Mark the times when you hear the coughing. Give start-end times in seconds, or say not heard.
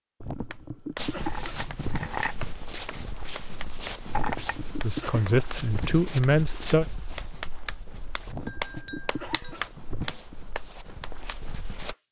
0.2-2.2, 4.0-6.0, 8.2-10.2.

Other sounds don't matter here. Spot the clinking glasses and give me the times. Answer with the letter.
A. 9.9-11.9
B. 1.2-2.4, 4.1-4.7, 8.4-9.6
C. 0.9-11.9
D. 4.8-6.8
B.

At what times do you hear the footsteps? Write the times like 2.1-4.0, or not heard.
0.9-11.9.